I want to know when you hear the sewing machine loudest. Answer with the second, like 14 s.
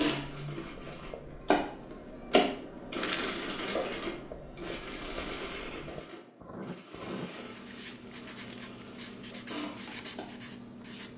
2 s.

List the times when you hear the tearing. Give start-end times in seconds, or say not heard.
not heard.